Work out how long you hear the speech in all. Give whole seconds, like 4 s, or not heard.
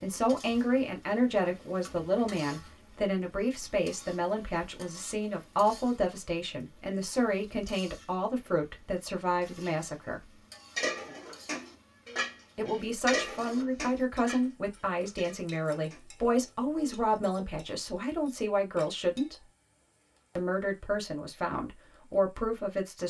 20 s.